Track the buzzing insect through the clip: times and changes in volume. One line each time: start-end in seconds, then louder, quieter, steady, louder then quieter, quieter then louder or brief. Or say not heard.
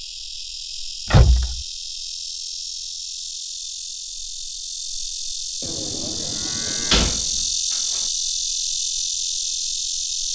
0.0-10.3 louder.